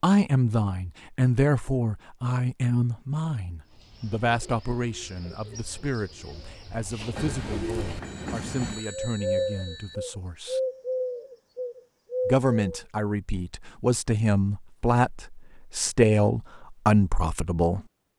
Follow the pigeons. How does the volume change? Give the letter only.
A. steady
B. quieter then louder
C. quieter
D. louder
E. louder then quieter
D.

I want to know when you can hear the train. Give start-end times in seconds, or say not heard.
7.1-8.8.